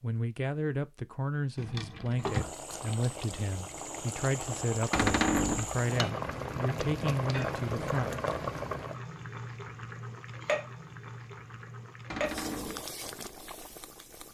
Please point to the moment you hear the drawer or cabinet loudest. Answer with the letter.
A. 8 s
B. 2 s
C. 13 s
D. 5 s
D.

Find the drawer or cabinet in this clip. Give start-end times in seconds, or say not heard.
1.6-2.5, 4.9-5.7, 12.1-12.8.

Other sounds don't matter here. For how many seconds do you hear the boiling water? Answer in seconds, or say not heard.
12 s.